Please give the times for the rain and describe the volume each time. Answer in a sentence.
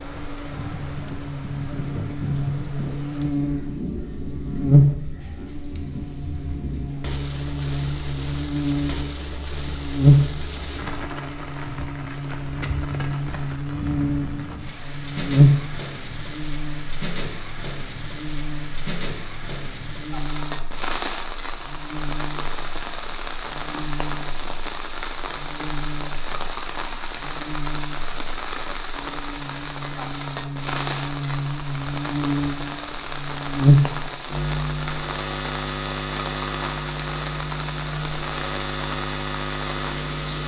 You can hear the rain from 0.0 to 40.4 s, at a steady volume.